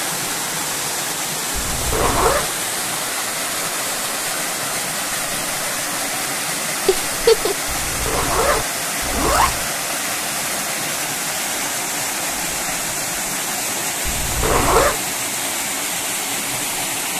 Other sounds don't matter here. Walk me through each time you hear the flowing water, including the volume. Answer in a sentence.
The flowing water can be heard from 0.0 to 17.1 s, at a steady volume.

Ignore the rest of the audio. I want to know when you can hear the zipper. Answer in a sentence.
The zipper can be heard from 1.5 to 2.5 s, from 7.7 to 9.7 s and from 14.1 to 14.9 s.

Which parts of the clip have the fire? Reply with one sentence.
You can't hear the fire here.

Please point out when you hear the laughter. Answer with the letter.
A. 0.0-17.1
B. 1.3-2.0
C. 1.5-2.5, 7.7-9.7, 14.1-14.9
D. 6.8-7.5
D.